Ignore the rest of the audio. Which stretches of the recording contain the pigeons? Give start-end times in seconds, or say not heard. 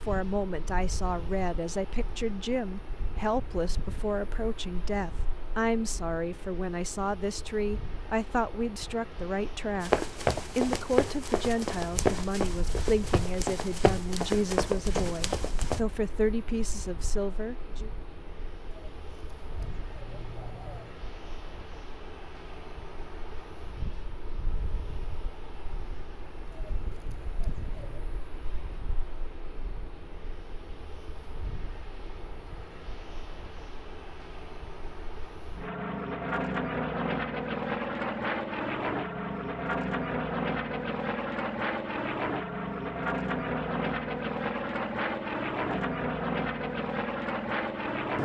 18.7-20.9, 26.5-28.1.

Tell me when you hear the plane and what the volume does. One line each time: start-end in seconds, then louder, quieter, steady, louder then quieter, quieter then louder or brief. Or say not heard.
0.0-48.2 louder.